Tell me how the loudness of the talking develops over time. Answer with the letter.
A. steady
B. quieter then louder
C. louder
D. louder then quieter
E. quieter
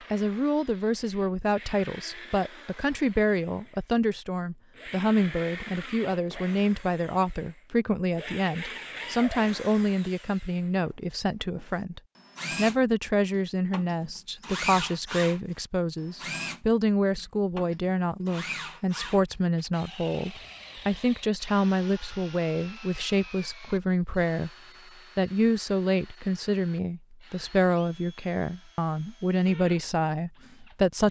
A.